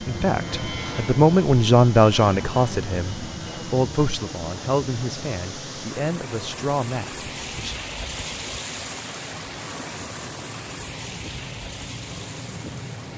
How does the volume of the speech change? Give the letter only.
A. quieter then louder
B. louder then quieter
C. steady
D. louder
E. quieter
E.